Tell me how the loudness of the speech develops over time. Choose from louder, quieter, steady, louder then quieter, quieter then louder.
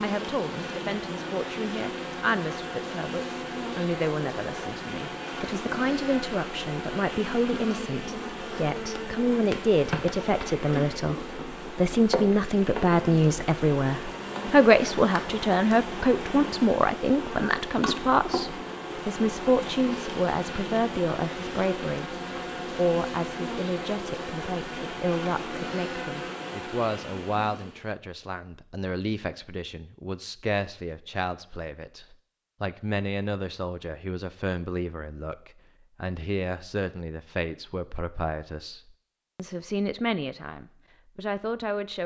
louder then quieter.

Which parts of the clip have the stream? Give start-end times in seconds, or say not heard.
not heard.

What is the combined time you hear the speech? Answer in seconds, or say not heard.
42 s.